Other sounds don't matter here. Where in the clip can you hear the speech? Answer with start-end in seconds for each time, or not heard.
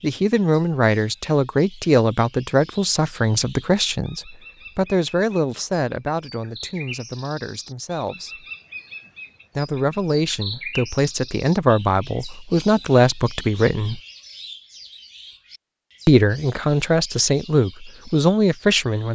0.0-8.4, 9.6-14.0, 16.1-19.1.